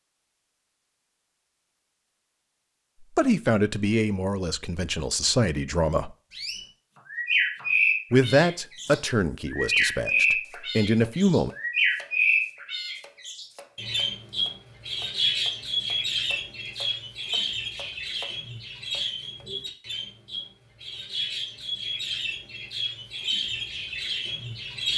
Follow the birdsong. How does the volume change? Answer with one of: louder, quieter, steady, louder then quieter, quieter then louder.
quieter.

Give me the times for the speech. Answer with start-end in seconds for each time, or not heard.
3.0-6.1, 8.1-11.5.